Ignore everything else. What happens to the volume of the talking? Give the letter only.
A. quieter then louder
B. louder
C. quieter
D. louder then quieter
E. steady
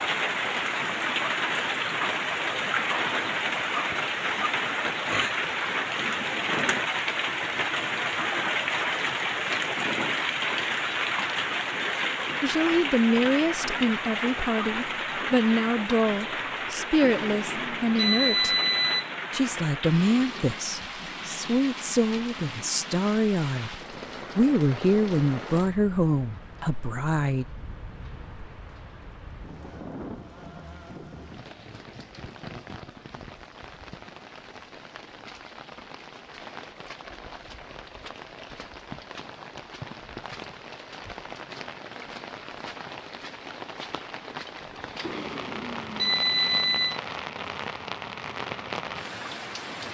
E.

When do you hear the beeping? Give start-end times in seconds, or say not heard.
17.0-19.1, 45.0-47.0.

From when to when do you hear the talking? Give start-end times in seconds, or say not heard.
12.4-18.6, 19.3-27.4.